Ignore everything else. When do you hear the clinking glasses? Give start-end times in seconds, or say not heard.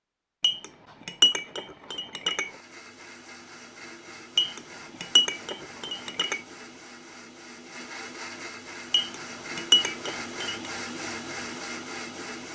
0.4-2.5, 4.3-6.4, 8.9-10.7.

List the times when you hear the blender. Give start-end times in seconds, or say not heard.
2.3-12.5.